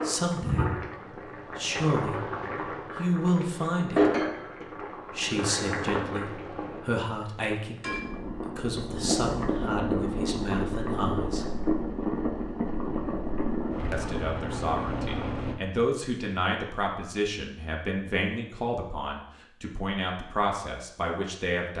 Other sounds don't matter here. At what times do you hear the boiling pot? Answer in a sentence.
You can hear the boiling pot from 0.0 to 15.6 s.